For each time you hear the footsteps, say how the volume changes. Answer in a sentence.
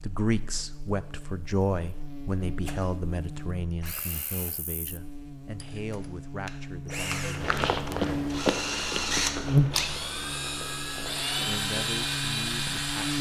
The footsteps can be heard from 7.3 to 12.8 s, getting quieter.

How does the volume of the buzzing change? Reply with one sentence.
The loudness of the buzzing goes up, then down.